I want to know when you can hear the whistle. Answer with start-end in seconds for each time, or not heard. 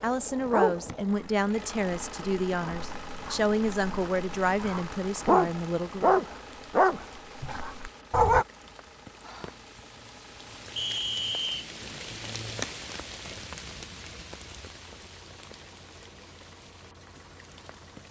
10.8-11.7.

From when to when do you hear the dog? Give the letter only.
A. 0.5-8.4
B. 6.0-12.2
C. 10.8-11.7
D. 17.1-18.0
A.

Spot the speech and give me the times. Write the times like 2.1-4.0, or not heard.
0.0-6.2.